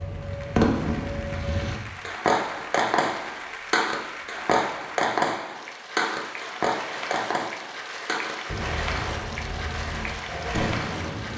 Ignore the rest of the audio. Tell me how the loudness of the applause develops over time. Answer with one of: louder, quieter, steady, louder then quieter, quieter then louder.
louder.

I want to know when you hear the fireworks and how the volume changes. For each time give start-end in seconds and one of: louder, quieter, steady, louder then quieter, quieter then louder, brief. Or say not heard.
0.0-11.3 quieter.